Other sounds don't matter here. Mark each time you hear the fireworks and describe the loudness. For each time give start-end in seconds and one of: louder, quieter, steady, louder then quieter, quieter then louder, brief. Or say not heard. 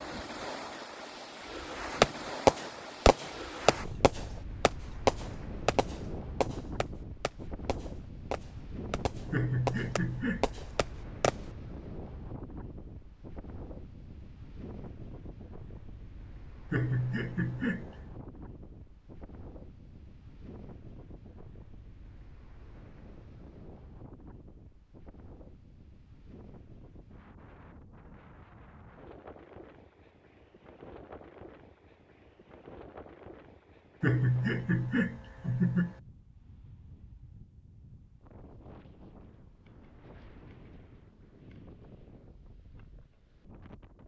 2.0-11.3 quieter then louder.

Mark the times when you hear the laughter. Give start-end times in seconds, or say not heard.
9.3-10.6, 16.7-17.9, 34.0-36.0.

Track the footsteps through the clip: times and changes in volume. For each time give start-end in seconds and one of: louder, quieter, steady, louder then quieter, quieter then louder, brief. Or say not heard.
not heard.